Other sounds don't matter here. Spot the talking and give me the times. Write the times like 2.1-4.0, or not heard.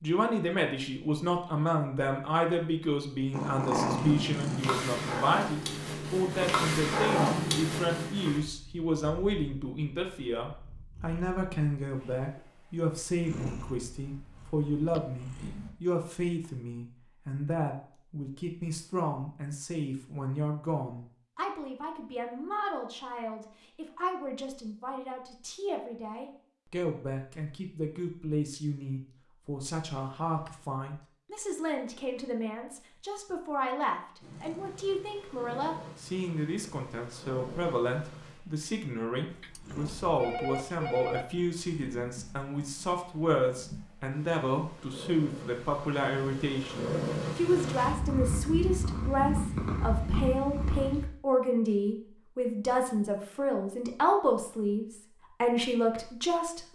0.0-56.7.